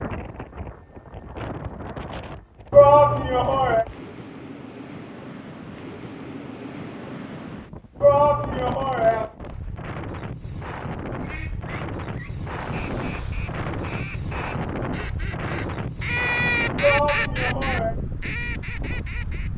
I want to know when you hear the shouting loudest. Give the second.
3 s.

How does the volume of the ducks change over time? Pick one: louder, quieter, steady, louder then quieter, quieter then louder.
louder then quieter.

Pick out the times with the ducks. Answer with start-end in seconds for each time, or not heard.
11.2-19.5.